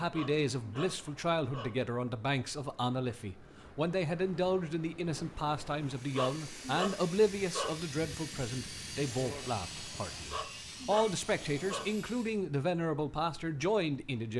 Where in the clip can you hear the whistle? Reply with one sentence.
You can't hear the whistle here.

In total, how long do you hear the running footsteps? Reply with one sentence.
You can't hear the running footsteps here.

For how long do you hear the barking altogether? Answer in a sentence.
The barking can be heard for 5 seconds in total.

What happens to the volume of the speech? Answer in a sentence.
The volume of the speech stays about the same.